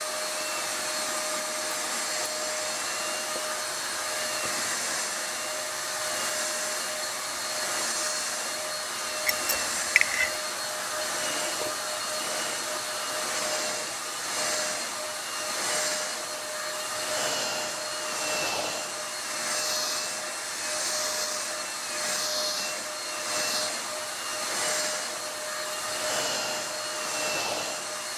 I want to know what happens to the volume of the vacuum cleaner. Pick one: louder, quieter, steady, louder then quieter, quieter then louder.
steady.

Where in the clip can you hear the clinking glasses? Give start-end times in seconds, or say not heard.
9.2-10.4.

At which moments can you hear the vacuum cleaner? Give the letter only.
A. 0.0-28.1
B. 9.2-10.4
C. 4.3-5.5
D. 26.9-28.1
A.